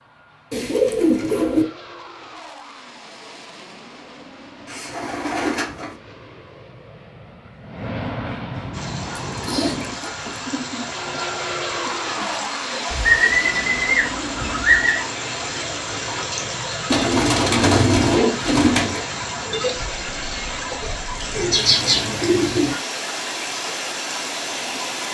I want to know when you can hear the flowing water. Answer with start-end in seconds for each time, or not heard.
8.7-25.0.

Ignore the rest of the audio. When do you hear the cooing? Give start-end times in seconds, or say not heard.
0.5-1.6, 4.7-6.0, 9.2-10.9, 12.9-15.1, 16.9-19.0, 21.4-22.8.